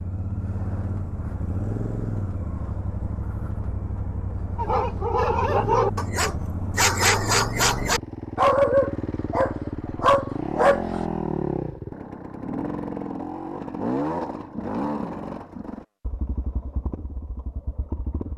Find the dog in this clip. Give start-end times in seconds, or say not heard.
4.5-11.1.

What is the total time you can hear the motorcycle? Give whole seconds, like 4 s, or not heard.
18 s.